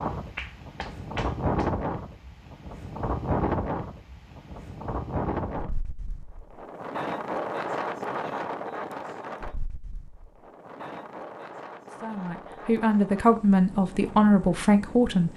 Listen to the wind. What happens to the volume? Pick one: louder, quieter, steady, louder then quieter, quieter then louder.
quieter.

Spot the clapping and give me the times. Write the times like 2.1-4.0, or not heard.
0.3-1.8.